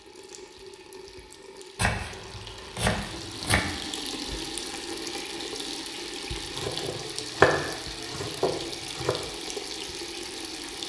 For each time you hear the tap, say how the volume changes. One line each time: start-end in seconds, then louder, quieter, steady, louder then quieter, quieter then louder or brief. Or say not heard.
0.0-10.8 louder.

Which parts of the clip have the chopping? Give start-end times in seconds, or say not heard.
1.8-3.6, 6.5-9.2.